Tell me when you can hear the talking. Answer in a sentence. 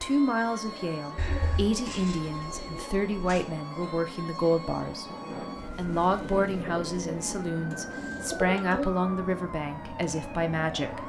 You can hear the talking from 0.0 to 5.0 s and from 5.8 to 11.0 s.